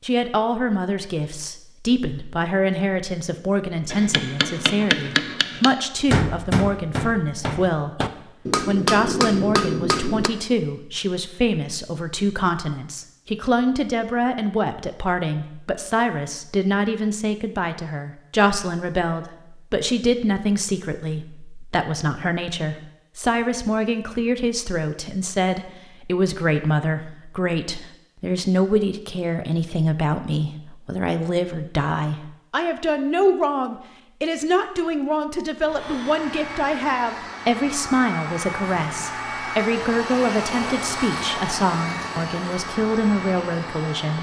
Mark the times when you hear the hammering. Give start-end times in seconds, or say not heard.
3.9-10.3.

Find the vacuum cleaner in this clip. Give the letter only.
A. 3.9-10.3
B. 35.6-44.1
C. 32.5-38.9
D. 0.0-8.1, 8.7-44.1
B.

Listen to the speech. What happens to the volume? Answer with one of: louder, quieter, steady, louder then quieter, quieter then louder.
steady.